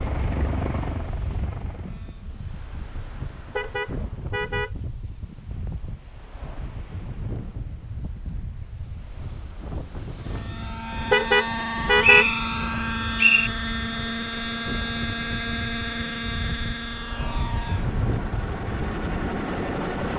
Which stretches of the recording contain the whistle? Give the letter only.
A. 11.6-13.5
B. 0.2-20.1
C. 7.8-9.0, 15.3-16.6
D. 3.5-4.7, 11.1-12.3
A.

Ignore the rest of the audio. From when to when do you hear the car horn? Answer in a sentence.
The car horn can be heard from 3.5 to 4.7 s and from 11.1 to 12.3 s.